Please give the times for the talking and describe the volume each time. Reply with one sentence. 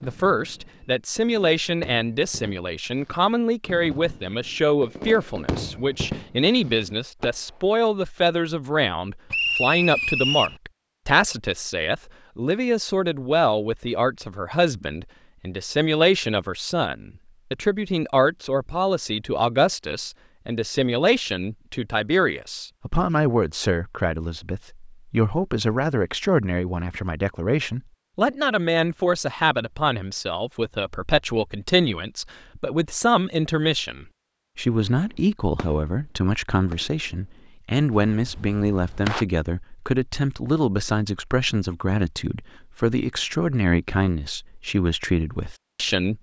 The talking can be heard from 0.0 to 46.1 s, at a steady volume.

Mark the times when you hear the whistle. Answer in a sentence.
The whistle can be heard from 9.3 to 10.6 s.